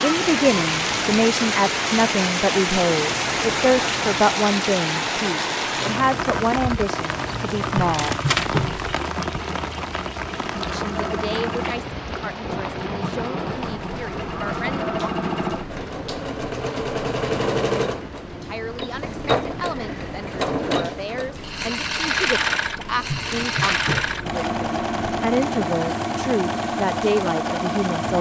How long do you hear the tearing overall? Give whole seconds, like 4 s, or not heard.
3 s.